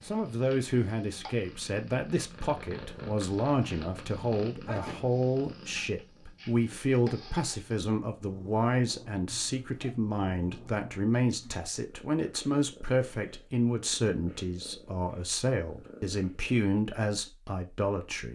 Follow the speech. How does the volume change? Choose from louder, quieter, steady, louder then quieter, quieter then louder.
steady.